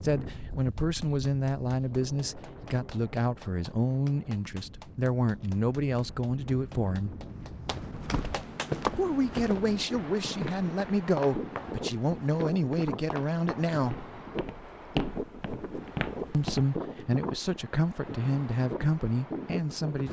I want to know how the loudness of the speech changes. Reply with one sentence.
The volume of the speech stays about the same.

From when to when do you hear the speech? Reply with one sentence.
You can hear the speech from 0.0 to 7.2 s, from 8.9 to 14.0 s and from 16.3 to 20.0 s.